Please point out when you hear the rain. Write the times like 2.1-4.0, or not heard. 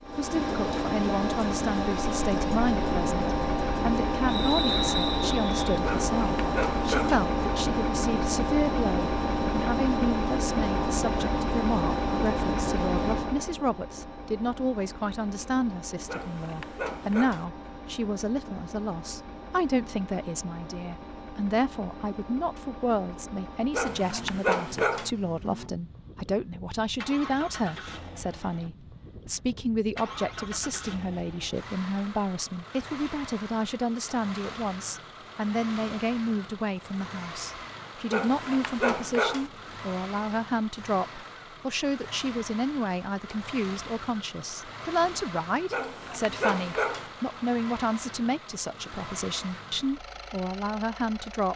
not heard.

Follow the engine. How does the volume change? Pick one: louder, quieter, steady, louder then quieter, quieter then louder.
quieter.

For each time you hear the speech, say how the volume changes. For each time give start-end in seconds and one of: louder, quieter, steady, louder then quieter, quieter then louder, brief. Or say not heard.
0.0-51.5 steady.